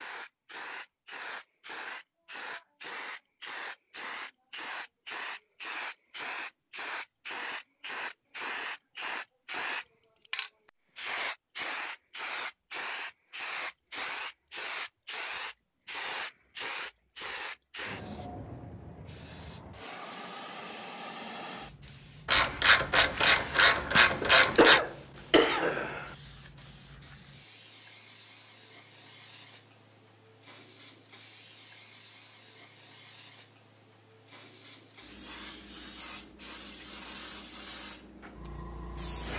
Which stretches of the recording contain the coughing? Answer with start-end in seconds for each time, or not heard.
24.2-26.1.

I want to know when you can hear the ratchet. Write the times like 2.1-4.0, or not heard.
22.2-24.8.